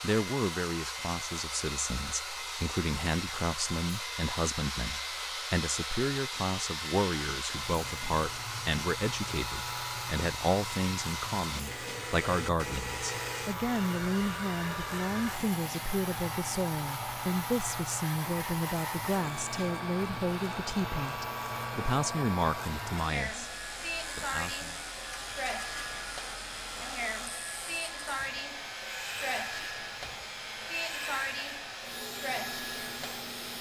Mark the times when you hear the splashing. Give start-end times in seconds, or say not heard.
not heard.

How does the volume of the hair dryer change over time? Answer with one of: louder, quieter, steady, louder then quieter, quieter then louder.
steady.